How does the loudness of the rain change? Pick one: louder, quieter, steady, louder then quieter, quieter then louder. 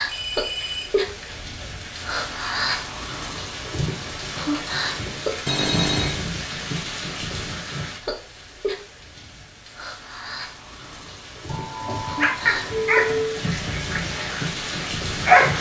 quieter then louder.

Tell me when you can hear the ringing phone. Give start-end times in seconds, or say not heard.
0.1-2.5, 5.5-6.2, 11.4-13.4.